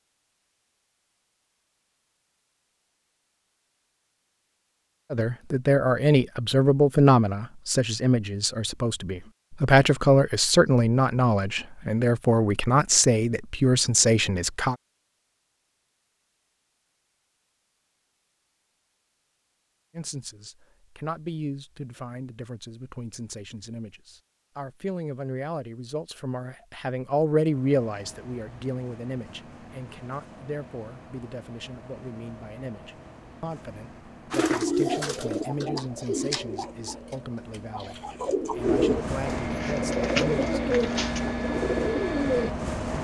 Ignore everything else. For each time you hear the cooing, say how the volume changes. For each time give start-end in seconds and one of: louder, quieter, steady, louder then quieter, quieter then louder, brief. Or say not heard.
34.3-42.5 quieter then louder.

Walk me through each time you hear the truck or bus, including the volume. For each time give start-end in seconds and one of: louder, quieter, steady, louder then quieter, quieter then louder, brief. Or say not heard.
27.4-42.9 louder.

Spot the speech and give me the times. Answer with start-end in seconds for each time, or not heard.
5.1-14.8, 19.9-40.8.